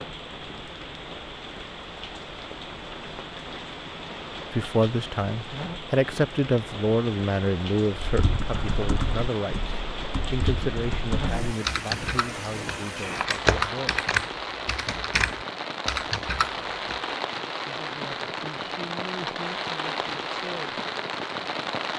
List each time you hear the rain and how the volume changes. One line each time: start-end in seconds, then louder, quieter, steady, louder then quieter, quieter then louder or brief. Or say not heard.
0.0-21.9 louder.